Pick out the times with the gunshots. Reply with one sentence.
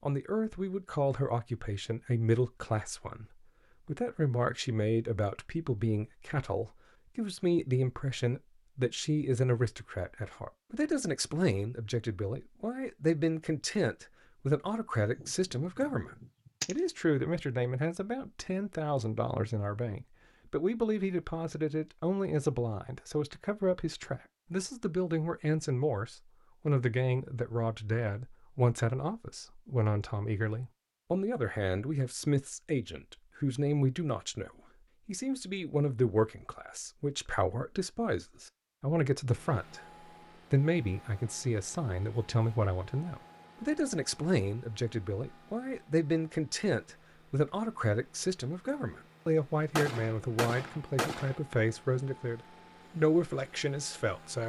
You can hear the gunshots from 15.2 to 16.8 s and from 49.8 to 51.4 s.